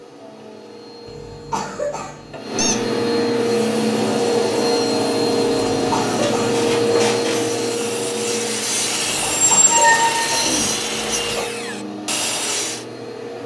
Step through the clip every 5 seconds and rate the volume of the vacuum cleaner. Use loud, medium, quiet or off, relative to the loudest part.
loud, loud, medium.